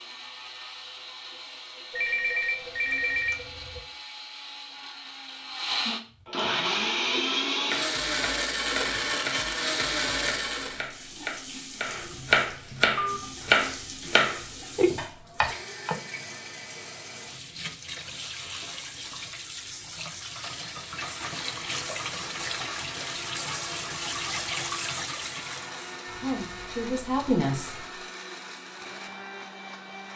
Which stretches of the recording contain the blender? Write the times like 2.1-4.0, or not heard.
0.0-10.9, 20.5-30.1.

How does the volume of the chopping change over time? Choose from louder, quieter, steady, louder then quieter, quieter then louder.
louder.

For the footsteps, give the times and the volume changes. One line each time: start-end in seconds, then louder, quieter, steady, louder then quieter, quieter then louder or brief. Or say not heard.
not heard.